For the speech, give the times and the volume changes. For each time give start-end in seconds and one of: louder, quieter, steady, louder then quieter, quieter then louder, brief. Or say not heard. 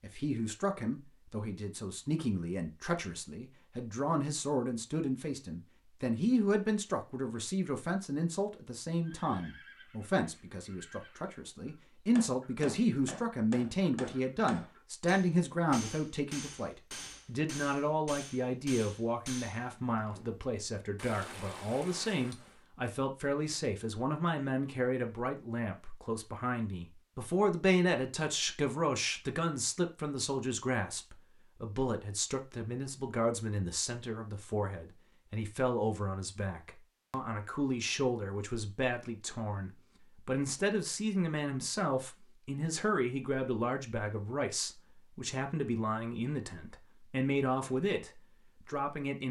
0.0-49.2 steady.